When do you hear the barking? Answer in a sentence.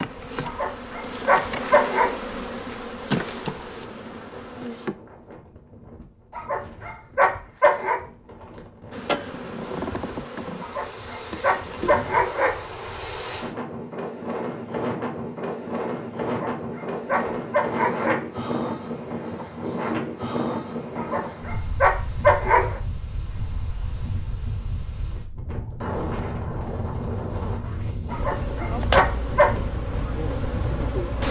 The barking can be heard from 0.4 to 2.1 s, from 6.3 to 8.0 s, from 10.6 to 12.6 s, from 16.2 to 18.2 s, from 20.9 to 22.8 s and from 28.1 to 29.5 s.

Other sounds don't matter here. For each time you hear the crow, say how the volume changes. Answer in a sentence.
The crow can't be heard in this clip.